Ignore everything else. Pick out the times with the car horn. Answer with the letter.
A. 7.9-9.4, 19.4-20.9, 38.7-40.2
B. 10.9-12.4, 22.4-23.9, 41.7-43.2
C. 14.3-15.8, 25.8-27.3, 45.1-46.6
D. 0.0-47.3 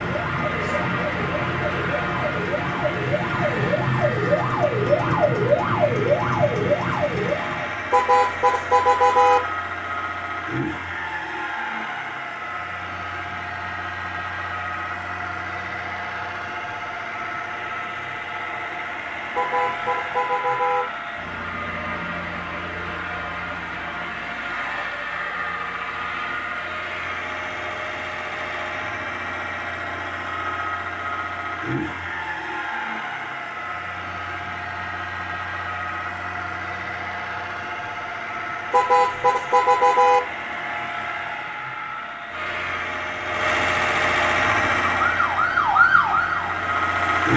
A.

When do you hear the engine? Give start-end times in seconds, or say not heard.
0.0-47.3.